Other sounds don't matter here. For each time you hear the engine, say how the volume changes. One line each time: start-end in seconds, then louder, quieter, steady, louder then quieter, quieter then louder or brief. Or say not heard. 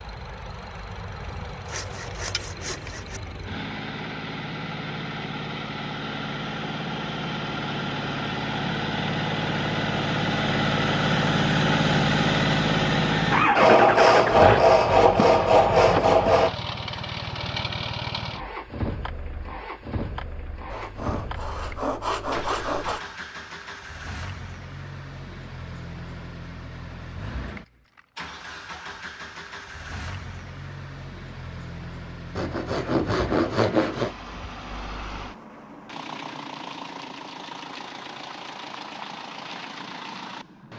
0.0-40.7 louder then quieter.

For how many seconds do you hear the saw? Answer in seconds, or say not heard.
9 s.